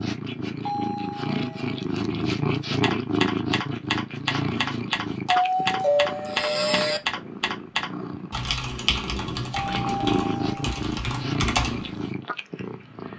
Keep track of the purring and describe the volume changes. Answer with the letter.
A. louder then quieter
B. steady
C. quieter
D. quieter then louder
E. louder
D.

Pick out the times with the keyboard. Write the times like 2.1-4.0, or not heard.
2.8-12.0.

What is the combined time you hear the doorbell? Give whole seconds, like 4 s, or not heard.
4 s.